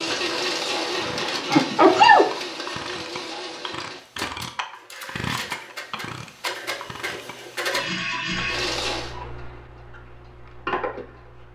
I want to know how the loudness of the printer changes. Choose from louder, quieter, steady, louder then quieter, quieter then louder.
quieter then louder.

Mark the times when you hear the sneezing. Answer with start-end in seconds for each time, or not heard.
0.9-2.3.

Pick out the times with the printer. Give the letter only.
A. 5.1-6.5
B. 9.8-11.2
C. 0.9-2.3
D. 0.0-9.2
D.